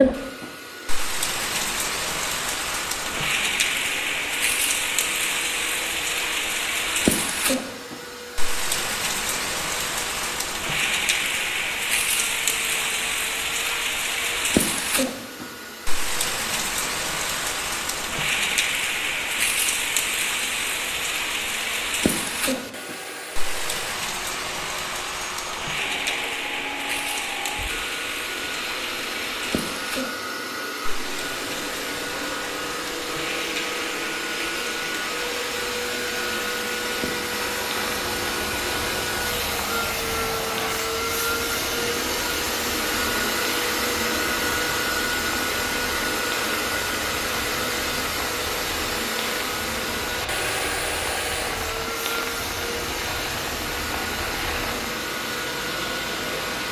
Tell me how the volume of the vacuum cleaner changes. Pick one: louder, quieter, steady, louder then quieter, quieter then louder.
louder.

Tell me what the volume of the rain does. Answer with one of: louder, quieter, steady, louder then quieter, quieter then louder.
quieter.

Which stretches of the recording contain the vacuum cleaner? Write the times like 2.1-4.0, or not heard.
0.0-56.6.